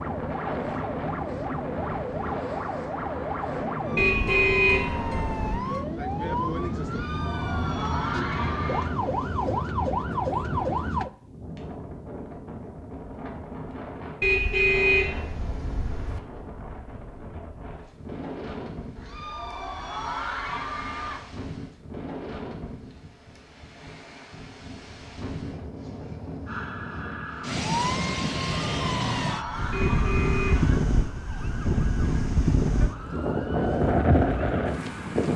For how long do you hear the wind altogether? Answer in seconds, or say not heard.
35 s.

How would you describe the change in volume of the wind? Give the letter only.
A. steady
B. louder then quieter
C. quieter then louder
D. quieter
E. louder
C.